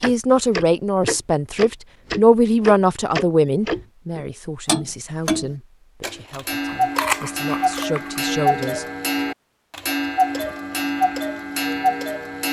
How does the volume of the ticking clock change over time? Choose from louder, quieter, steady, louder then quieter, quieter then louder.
steady.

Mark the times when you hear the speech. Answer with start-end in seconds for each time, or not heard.
0.0-8.8.